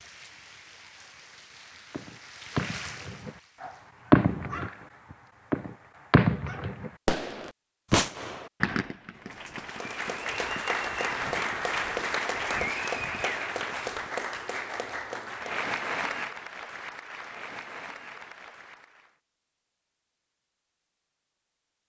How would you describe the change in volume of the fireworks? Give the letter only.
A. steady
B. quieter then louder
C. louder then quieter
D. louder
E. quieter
E.